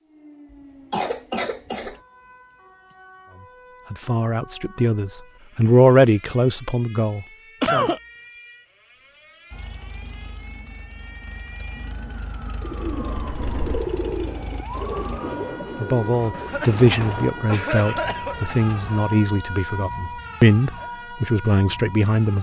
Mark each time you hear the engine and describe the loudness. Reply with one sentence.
You can hear the engine from 9.5 to 15.2 s, getting louder.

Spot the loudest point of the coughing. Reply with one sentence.
The volume of the coughing peaks at 8 seconds.